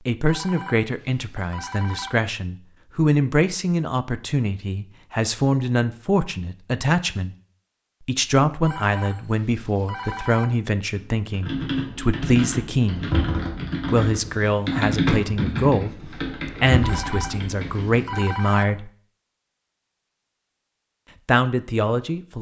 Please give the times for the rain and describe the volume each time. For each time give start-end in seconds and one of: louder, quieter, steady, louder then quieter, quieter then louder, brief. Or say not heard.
not heard.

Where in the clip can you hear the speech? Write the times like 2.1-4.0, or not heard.
0.1-7.3, 8.1-13.1, 13.9-18.9, 21.2-22.3.